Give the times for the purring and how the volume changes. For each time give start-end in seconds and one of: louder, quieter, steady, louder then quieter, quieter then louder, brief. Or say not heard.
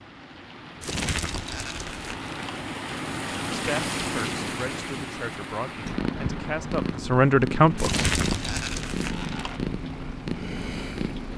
5.8-11.3 steady.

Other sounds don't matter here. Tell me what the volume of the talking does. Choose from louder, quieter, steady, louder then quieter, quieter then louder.
louder.